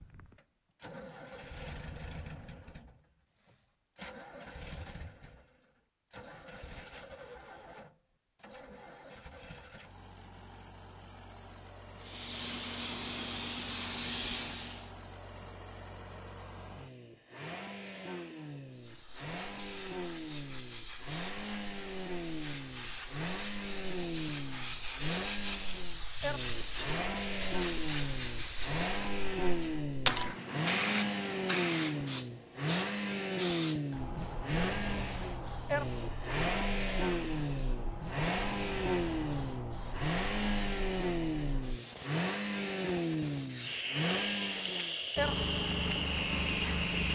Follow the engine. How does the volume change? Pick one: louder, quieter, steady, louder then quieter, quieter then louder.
louder.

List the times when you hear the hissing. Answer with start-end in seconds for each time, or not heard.
12.0-14.9, 18.6-47.1.